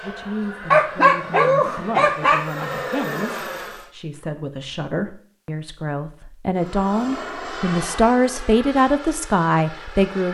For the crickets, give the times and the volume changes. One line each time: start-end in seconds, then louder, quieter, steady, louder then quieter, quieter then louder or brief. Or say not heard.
not heard.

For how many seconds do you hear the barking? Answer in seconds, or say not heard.
2 s.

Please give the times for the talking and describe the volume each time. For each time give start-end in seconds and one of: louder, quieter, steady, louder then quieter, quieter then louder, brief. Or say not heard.
0.0-10.2 louder.